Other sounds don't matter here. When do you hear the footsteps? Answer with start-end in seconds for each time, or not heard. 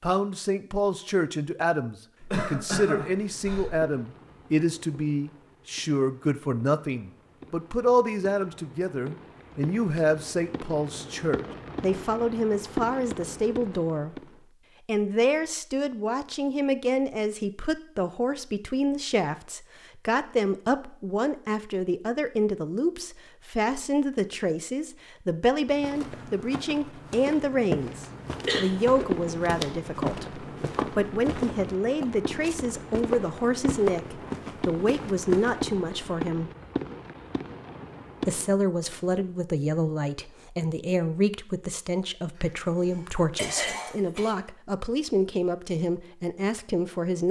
25.7-35.8.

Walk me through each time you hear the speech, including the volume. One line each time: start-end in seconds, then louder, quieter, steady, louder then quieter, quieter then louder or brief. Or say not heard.
0.0-36.5 steady
38.2-47.2 steady.